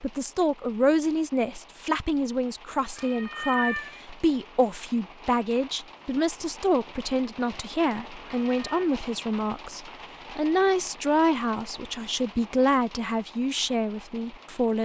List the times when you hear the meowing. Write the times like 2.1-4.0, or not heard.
3.0-4.0, 8.2-8.8.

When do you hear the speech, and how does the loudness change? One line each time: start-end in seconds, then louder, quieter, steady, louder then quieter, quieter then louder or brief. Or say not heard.
0.0-14.7 steady.